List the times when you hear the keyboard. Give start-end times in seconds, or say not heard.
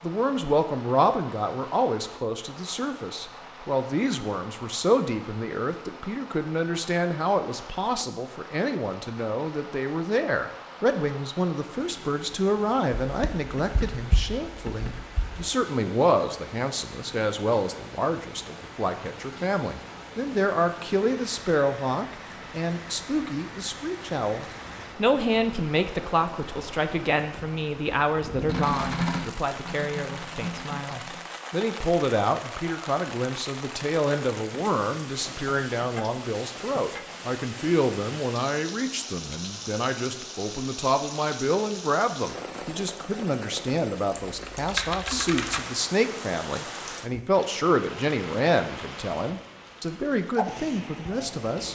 13.0-15.4, 28.4-31.2, 44.1-45.6.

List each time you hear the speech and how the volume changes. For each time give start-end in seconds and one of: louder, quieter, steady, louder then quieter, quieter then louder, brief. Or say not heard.
0.0-51.6 steady.